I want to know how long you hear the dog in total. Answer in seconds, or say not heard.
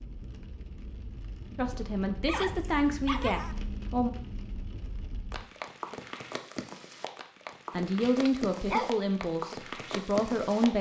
2 s.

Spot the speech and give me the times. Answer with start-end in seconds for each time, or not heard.
1.6-4.1, 7.7-10.7.